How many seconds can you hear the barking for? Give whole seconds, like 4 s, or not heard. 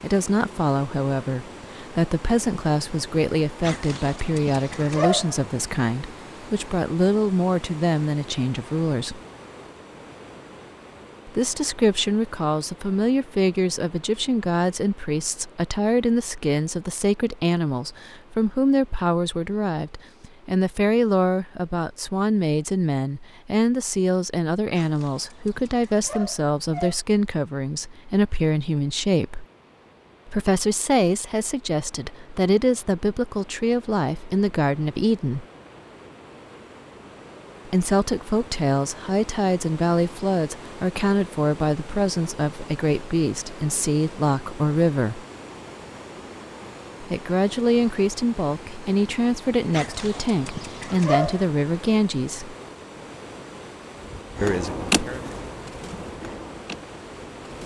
6 s.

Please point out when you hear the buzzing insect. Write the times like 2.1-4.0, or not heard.
54.0-57.6.